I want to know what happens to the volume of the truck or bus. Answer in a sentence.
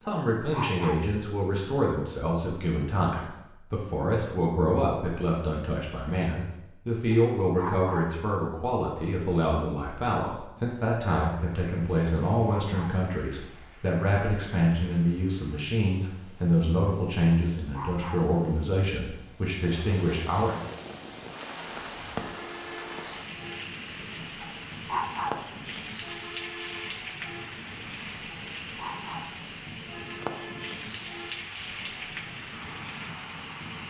The loudness of the truck or bus stays about the same.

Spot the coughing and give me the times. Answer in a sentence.
You can't hear the coughing here.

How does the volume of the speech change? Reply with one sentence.
The volume of the speech stays about the same.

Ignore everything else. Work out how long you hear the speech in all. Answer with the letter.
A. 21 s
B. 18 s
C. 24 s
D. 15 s
A.